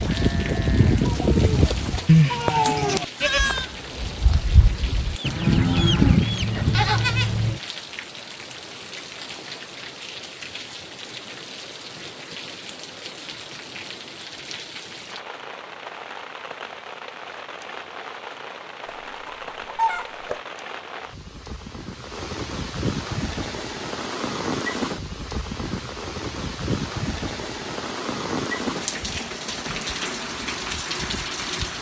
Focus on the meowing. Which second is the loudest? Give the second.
3 s.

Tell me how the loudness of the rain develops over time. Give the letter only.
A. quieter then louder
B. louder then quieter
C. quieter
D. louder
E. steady
D.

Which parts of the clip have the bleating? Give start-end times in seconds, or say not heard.
0.0-7.6.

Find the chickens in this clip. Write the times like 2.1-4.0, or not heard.
5.2-6.7, 18.9-20.4.